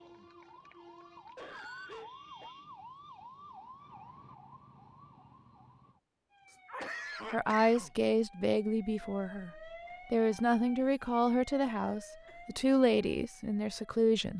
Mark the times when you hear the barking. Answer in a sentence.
You can't hear the barking here.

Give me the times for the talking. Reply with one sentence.
You can hear the talking from 7.3 to 9.5 s and from 10.1 to 14.3 s.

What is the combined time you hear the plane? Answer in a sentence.
You can't hear the plane here.